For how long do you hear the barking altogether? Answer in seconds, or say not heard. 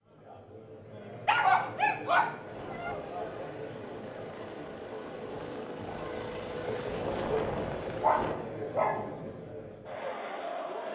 3 s.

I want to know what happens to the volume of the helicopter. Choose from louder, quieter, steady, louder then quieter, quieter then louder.
louder.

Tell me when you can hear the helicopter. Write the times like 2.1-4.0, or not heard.
2.5-8.3.